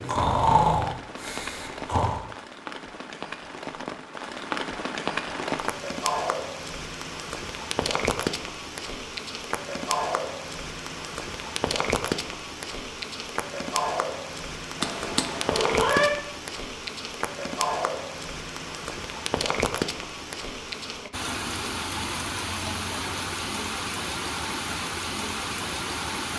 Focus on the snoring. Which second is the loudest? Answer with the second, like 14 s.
1 s.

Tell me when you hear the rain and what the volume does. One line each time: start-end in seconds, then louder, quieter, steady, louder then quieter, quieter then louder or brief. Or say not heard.
0.0-26.3 steady.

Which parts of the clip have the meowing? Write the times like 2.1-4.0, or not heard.
14.8-16.1.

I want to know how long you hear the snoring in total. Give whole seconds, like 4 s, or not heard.
2 s.